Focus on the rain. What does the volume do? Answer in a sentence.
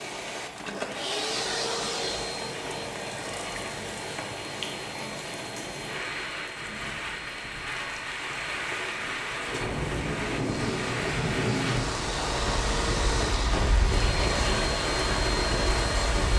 The volume of the rain goes up.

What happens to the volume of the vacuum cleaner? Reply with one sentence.
The volume of the vacuum cleaner goes down, then up.